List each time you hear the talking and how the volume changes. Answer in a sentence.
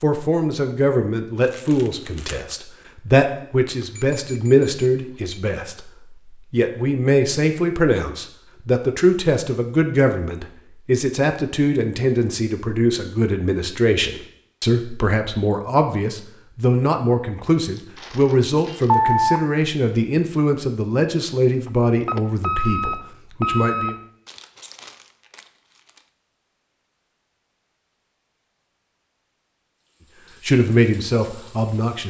You can hear the talking from 0.0 to 23.9 s, at a steady volume; and briefly from 30.4 to 32.0 s.